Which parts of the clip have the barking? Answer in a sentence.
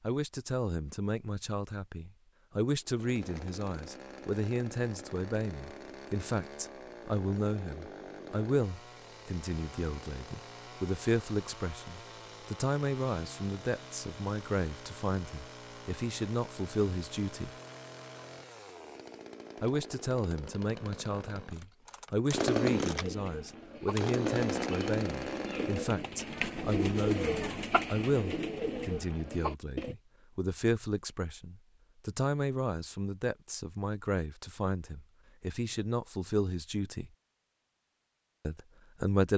You can't hear the barking here.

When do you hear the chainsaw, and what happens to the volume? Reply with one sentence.
You can hear the chainsaw from 2.8 to 25.9 s, getting louder.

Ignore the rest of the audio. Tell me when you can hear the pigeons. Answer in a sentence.
You can hear the pigeons from 22.9 to 29.9 s.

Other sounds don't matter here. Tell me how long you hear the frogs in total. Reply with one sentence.
You can't hear the frogs here.